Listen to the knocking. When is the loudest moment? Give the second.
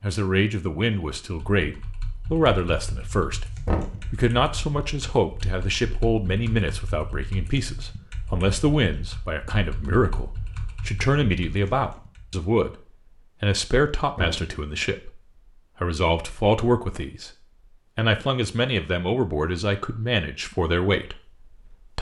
4 s.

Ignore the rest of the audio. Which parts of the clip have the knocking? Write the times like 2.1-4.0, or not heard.
3.6-4.1, 14.2-14.6.